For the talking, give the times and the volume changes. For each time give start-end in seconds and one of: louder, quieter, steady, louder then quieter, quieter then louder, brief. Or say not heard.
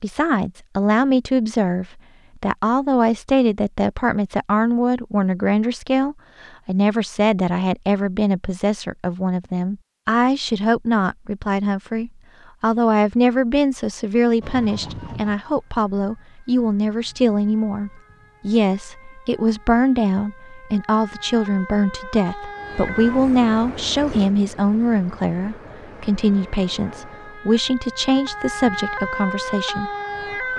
0.0-30.5 steady.